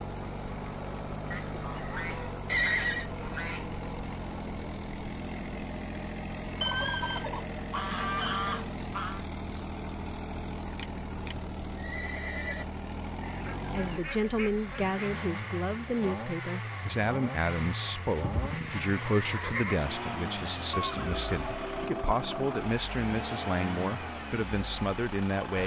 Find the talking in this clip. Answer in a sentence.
The talking can be heard from 13.7 to 25.6 s.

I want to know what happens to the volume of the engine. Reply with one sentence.
The volume of the engine stays about the same.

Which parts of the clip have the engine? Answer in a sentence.
You can hear the engine from 0.0 to 25.6 s.